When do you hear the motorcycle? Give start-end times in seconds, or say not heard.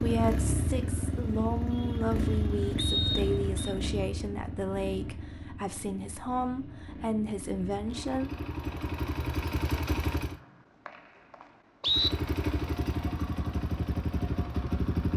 0.0-10.4, 11.8-15.1.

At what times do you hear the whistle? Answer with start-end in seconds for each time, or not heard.
2.8-3.8, 10.2-12.1.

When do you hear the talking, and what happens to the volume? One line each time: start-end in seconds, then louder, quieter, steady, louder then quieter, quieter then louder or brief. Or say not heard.
0.0-8.3 steady.